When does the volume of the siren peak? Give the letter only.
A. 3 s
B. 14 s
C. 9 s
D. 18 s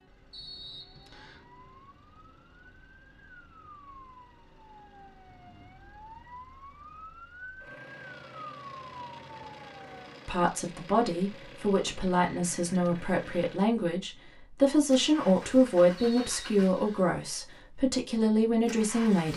C.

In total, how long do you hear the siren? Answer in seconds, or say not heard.
10 s.